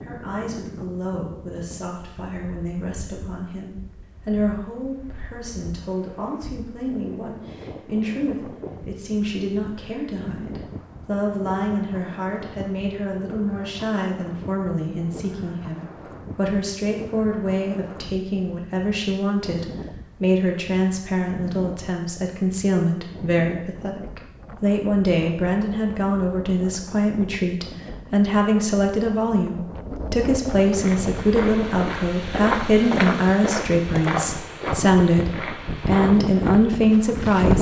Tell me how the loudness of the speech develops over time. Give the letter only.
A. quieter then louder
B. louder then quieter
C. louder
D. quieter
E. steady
C.